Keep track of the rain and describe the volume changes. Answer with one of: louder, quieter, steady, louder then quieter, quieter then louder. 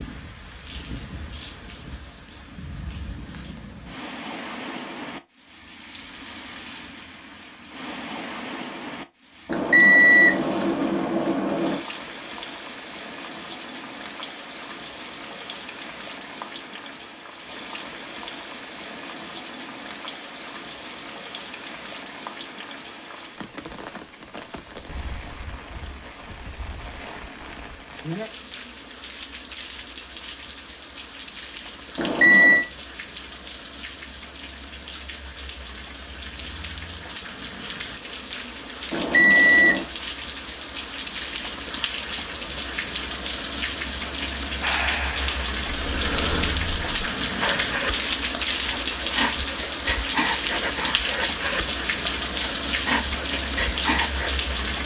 louder.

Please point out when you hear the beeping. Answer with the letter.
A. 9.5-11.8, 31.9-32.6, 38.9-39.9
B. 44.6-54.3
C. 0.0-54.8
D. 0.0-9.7
A.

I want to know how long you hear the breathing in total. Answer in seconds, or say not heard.
10 s.